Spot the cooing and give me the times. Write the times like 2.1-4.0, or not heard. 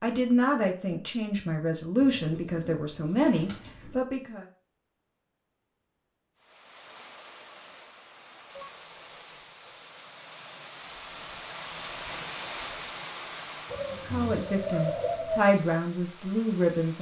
2.0-4.0, 13.7-15.4.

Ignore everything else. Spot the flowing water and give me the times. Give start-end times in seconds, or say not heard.
6.3-16.9.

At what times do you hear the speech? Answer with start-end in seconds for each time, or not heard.
0.0-4.5, 13.9-16.9.